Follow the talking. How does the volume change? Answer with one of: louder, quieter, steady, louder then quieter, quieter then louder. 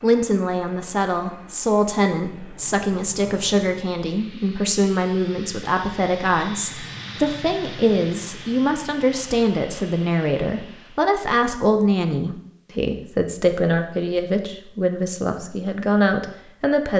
steady.